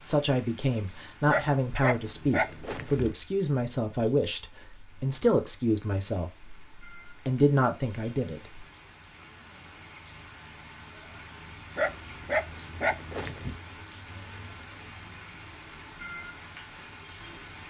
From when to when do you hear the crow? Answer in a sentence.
You can't hear the crow here.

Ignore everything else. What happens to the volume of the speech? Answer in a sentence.
The loudness of the speech stays about the same.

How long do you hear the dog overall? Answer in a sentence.
The dog can be heard for 4 seconds in total.